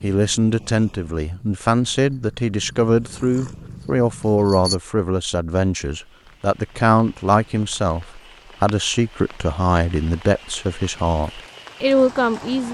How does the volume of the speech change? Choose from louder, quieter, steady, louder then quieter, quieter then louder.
steady.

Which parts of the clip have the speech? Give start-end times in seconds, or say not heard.
0.0-12.7.